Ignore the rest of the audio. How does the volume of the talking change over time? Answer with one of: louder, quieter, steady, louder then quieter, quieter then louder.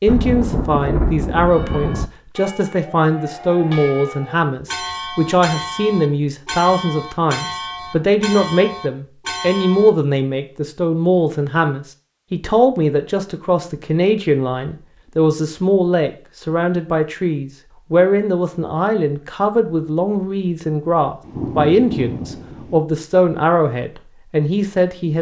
steady.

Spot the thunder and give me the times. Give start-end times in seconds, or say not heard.
0.1-2.1, 21.2-22.8.